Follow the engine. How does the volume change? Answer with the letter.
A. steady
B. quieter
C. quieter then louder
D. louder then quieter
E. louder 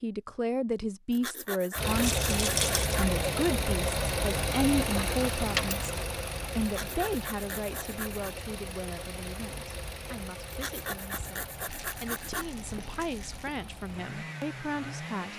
B.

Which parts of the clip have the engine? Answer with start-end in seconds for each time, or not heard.
1.8-15.3.